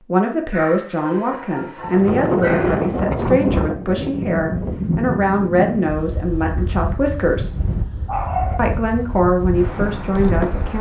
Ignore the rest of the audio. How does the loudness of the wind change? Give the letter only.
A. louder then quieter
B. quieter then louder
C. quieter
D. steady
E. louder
C.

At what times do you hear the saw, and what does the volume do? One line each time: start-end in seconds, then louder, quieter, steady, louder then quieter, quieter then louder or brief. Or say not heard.
not heard.